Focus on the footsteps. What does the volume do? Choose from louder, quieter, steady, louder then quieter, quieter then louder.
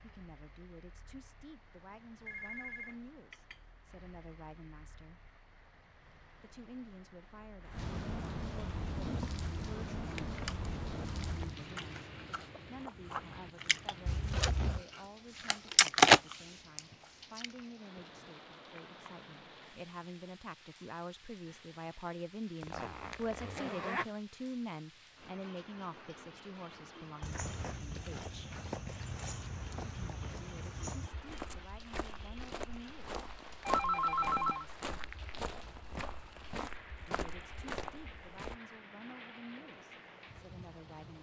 steady.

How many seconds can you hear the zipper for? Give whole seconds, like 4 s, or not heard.
2 s.